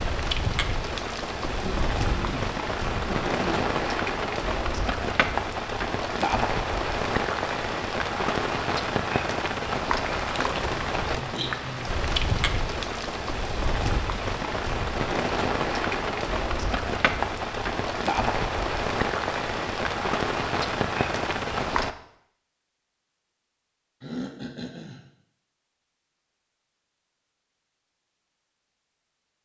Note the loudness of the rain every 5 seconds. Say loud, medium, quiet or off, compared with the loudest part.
loud, loud, loud, loud, loud, off.